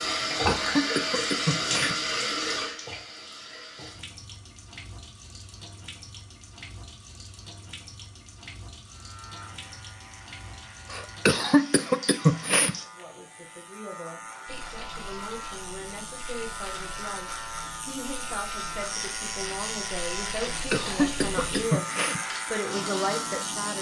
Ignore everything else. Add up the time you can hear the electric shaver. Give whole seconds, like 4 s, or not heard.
15 s.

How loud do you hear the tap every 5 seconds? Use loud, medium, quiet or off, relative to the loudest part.
loud, quiet, quiet, quiet, medium.